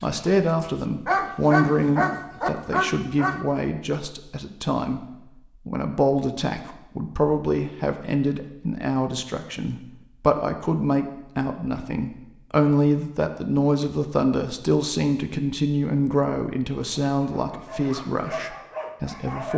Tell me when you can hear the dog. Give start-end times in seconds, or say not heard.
0.2-3.5, 17.0-19.5.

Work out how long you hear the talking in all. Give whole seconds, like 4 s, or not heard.
19 s.